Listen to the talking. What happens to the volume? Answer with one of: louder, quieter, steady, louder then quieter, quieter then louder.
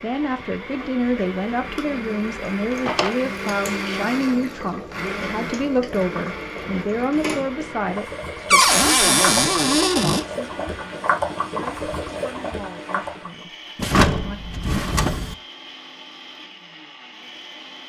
quieter.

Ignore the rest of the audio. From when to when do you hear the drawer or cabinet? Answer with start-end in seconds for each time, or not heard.
2.6-3.1, 8.5-10.2, 13.8-15.3.